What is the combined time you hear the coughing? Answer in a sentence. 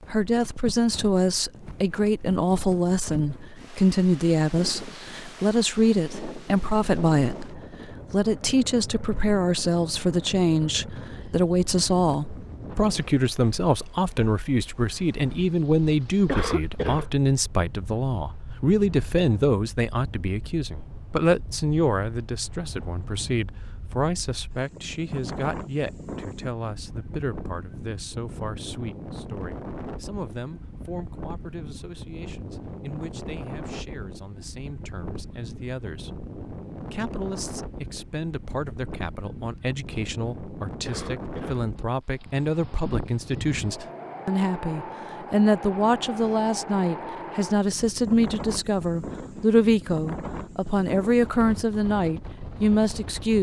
The coughing can be heard for 2 seconds in total.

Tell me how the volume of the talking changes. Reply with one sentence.
The loudness of the talking goes down, then up.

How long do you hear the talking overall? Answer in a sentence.
You can hear the talking for 53 seconds altogether.